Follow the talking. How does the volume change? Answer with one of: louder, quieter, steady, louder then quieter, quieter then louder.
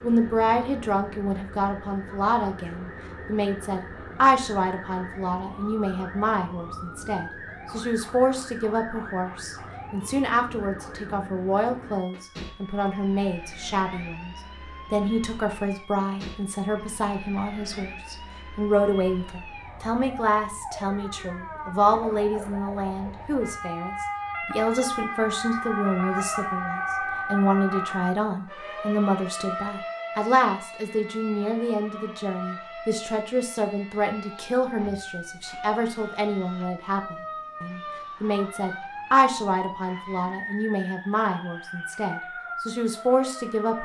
steady.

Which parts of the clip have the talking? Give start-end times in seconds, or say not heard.
0.0-14.3, 14.9-43.8.